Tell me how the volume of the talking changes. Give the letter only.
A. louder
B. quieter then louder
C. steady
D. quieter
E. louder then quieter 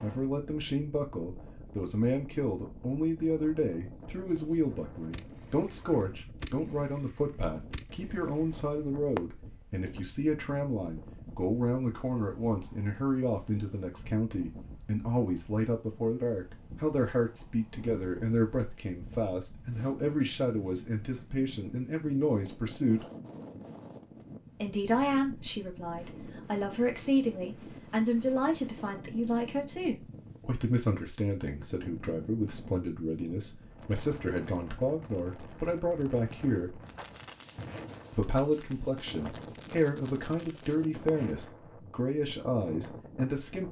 C.